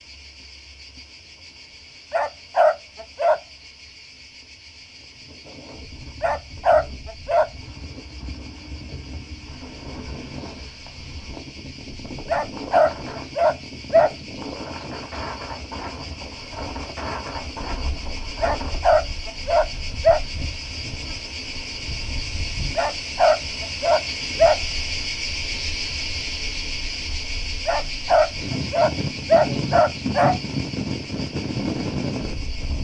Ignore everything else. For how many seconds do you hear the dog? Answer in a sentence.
The dog can be heard for 11 seconds in total.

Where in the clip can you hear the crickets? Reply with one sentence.
You can hear the crickets from 0.0 to 32.8 s.